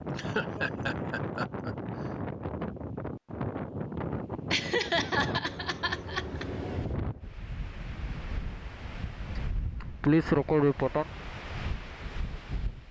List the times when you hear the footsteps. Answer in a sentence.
You can't hear the footsteps here.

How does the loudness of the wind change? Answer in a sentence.
The loudness of the wind goes down.